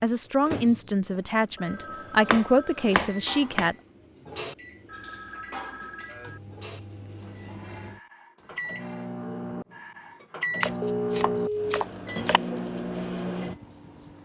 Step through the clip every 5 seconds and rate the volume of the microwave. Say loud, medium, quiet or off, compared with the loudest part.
medium, medium, loud.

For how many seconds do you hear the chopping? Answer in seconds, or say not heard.
3 s.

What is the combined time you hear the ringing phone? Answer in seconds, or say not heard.
4 s.